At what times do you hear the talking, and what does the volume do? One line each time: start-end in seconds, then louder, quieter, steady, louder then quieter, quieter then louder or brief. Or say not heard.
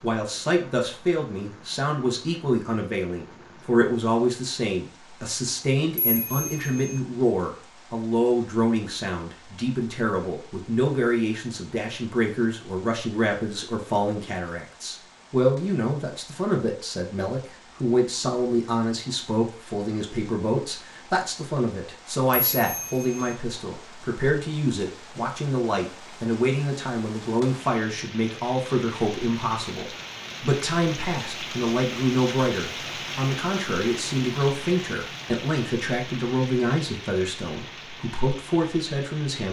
0.0-39.4 steady.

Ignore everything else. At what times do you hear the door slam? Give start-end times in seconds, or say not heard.
not heard.